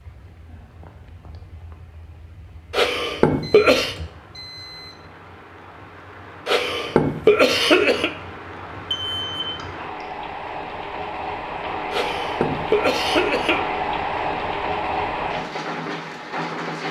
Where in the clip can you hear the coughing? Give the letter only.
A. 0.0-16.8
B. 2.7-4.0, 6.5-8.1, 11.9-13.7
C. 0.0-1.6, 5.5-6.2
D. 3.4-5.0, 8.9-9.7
B.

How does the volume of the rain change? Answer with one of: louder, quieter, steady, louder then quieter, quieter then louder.
louder.